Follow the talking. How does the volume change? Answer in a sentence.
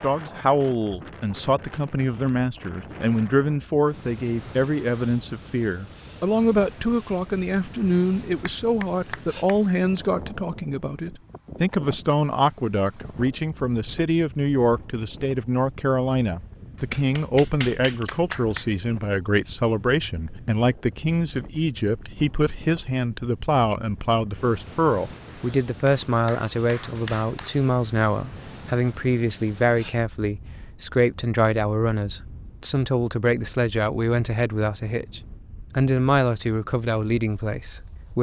The volume of the talking stays about the same.